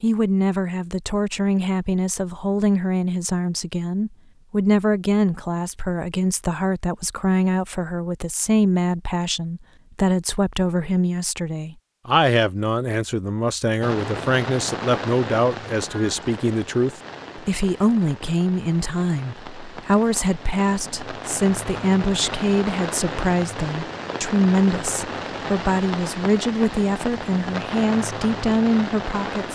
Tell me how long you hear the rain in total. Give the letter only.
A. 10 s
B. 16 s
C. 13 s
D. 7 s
B.